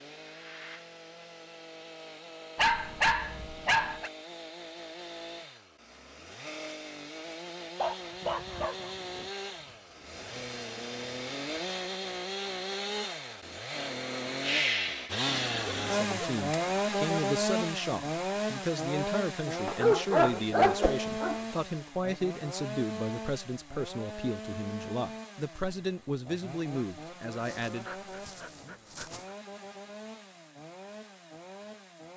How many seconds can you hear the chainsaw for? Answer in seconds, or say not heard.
32 s.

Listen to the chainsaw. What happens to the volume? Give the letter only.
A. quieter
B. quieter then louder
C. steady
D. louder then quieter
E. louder
D.